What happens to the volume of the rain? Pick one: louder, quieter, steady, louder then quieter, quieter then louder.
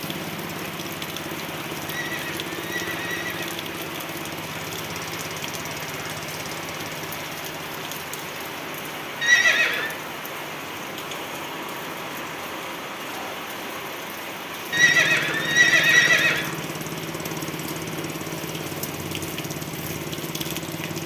steady.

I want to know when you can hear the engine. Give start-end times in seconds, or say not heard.
0.0-12.3, 14.7-21.0.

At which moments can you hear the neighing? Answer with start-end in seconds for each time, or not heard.
1.9-3.5, 9.2-9.9, 14.7-16.4.